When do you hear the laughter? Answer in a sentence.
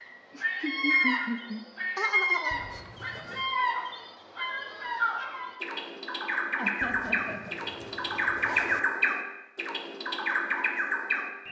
You can hear the laughter from 0.3 to 2.6 s and from 6.5 to 7.5 s.